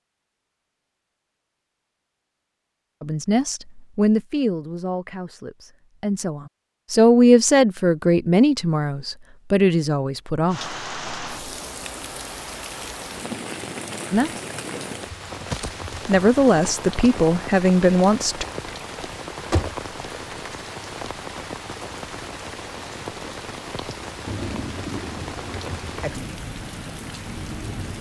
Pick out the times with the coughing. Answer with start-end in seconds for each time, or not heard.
not heard.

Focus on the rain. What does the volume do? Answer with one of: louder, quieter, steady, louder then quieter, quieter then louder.
steady.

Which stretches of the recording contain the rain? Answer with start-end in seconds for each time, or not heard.
10.5-27.9.